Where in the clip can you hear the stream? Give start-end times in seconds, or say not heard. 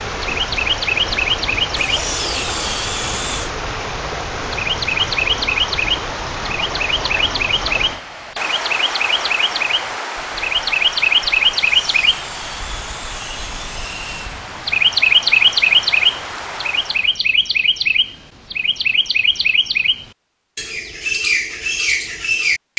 0.0-17.2.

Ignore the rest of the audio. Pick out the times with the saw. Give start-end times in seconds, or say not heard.
1.8-3.5, 11.6-14.4.